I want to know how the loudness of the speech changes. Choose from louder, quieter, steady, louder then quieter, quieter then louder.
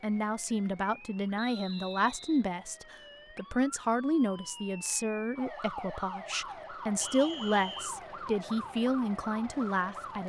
steady.